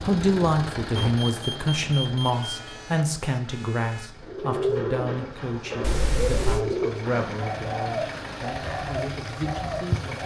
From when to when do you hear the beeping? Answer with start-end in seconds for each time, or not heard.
0.9-2.5, 5.8-6.7.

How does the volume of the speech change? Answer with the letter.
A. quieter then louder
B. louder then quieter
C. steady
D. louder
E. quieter
E.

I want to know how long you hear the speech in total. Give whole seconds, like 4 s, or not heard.
10 s.